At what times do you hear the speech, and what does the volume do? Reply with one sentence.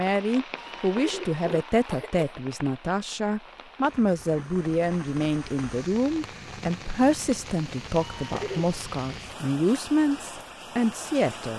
The speech can be heard from 0.0 to 11.5 s, at a steady volume.